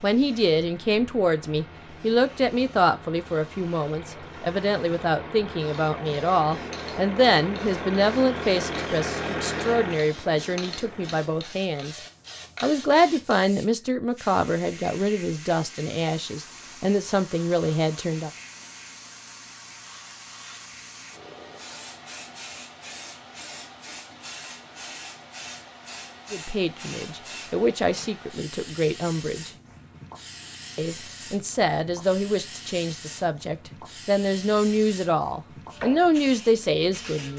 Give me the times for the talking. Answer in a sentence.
The talking can be heard from 0.0 to 12.0 s, from 12.6 to 18.3 s, from 26.3 to 29.5 s and from 30.8 to 37.3 s.